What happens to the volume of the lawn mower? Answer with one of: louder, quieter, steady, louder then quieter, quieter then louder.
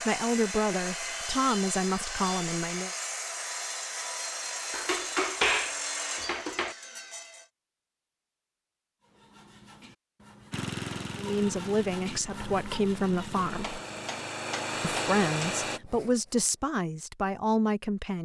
quieter then louder.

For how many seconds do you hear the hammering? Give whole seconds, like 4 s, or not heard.
4 s.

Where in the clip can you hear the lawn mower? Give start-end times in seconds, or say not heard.
10.5-15.8.